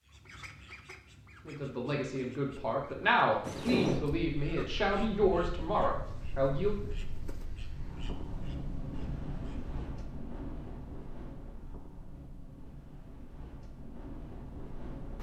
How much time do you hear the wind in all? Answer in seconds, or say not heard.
12 s.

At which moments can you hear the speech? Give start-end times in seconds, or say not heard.
1.4-6.8.